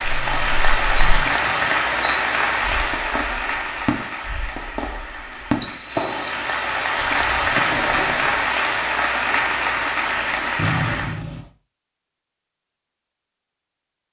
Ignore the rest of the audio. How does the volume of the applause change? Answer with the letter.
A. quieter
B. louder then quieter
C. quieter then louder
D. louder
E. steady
C.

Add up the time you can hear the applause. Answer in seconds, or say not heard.
11 s.